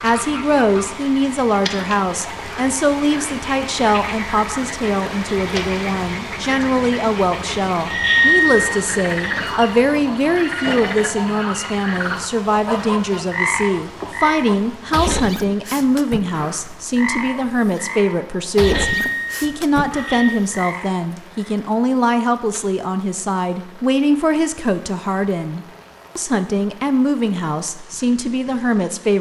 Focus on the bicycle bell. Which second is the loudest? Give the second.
8 s.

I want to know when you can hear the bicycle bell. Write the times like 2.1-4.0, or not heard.
7.8-9.3, 18.6-20.4.